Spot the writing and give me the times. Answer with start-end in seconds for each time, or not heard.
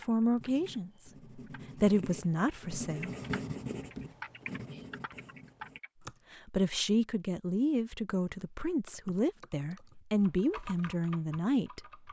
0.3-5.8.